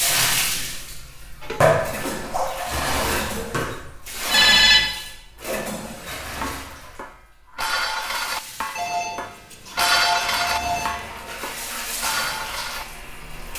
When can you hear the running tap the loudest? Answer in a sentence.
The volume of the running tap peaks at 2 seconds.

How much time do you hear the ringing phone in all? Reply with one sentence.
You can hear the ringing phone for 3 seconds altogether.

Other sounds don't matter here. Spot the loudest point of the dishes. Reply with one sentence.
The volume of the dishes peaks at 10 seconds.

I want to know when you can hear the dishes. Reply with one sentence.
The dishes can be heard from 1.4 to 12.8 s.